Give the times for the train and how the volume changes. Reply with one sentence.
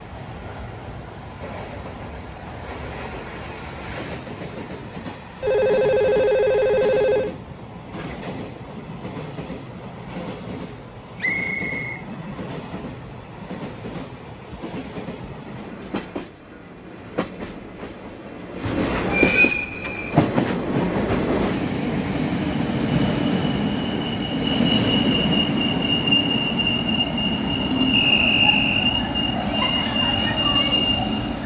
The train can be heard from 0.0 to 31.4 s, getting louder.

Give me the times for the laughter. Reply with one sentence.
You can't hear the laughter here.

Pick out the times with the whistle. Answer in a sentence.
You can hear the whistle from 11.2 to 12.0 s and from 27.9 to 28.8 s.